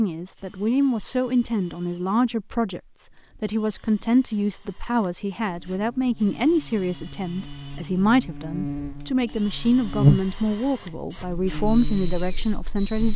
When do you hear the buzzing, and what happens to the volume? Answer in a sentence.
You can hear the buzzing from 5.4 to 13.1 s, getting louder then quieter.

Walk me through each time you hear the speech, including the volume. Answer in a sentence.
You can hear the speech from 0.0 to 13.1 s, at a steady volume.